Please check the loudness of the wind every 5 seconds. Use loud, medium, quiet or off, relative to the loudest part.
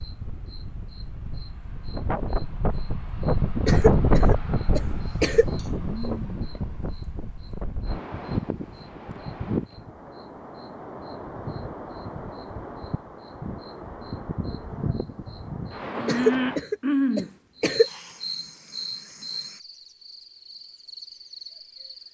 loud, medium, medium, medium, off.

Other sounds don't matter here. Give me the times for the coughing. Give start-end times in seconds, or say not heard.
3.6-5.5, 16.1-17.9.